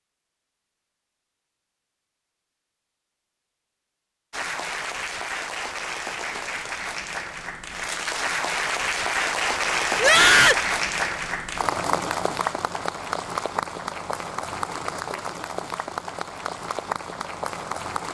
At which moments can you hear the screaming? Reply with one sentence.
You can hear the screaming from 9.9 to 10.7 s.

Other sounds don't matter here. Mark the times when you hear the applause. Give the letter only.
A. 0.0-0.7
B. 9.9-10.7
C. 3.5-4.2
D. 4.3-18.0
D.